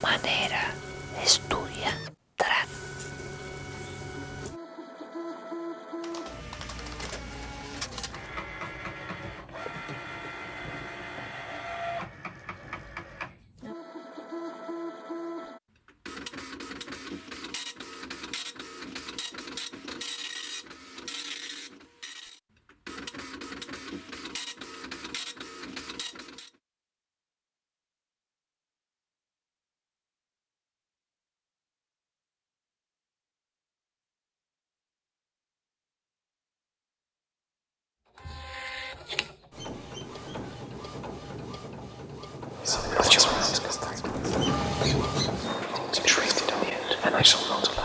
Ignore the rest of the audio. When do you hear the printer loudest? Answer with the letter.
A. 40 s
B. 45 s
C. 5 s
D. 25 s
B.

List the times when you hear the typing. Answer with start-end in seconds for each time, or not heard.
6.0-7.3.